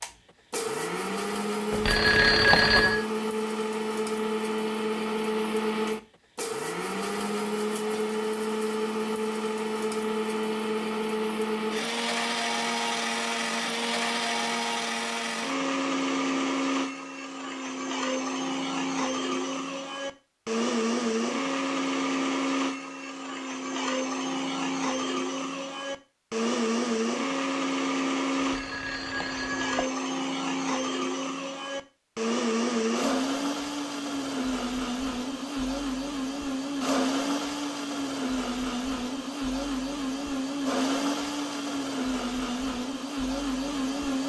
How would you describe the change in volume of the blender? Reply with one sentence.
The volume of the blender stays about the same.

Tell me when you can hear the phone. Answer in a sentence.
The phone can be heard from 1.7 to 3.0 s and from 28.4 to 29.9 s.